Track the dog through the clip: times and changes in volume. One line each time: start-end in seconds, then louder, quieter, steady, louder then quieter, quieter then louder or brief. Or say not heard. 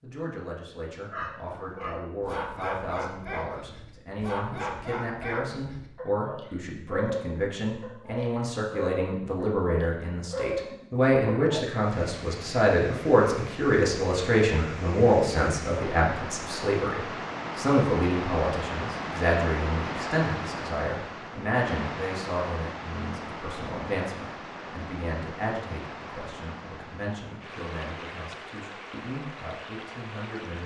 1.1-11.6 steady.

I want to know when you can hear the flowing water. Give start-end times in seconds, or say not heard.
11.8-30.6.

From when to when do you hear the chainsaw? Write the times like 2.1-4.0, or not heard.
not heard.